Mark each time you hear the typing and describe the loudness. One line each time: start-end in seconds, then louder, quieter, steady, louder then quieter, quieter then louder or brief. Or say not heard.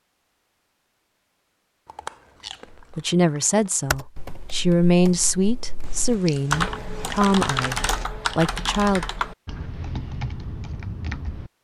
3.9-11.5 louder then quieter.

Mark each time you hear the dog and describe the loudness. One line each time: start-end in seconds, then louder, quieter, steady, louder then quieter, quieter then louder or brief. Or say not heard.
not heard.